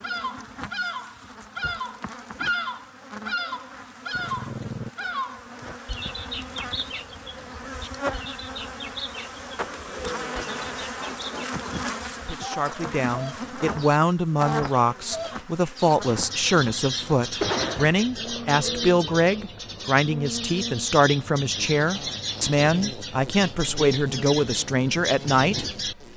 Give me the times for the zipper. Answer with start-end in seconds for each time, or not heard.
17.4-18.4.